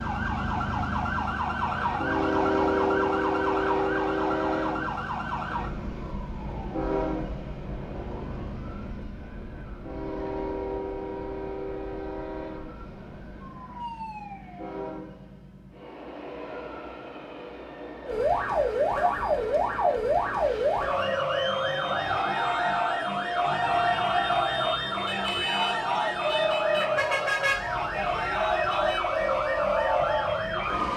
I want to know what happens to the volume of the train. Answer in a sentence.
The volume of the train goes down.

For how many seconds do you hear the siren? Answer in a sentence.
You can hear the siren for 28 seconds altogether.